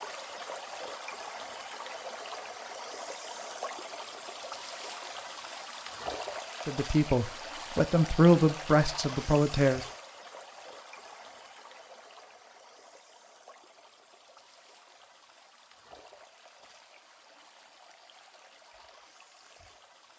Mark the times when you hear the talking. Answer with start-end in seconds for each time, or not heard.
6.7-9.8.